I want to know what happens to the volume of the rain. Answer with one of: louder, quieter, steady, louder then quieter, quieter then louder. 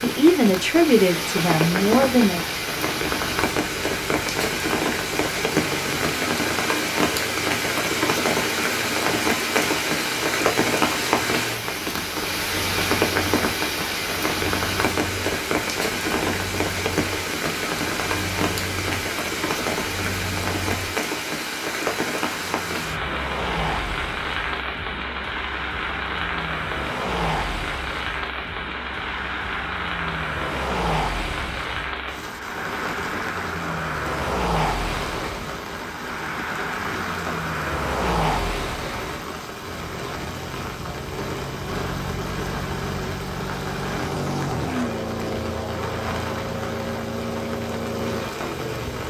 quieter.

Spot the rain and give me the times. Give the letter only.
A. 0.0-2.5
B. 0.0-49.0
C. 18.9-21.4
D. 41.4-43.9
B.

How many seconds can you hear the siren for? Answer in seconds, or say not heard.
not heard.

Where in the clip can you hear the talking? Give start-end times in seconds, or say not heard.
0.0-2.5.